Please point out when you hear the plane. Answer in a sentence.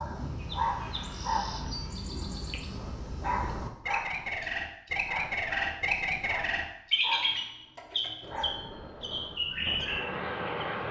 You can hear the plane from 0.0 to 3.7 s and from 8.2 to 10.8 s.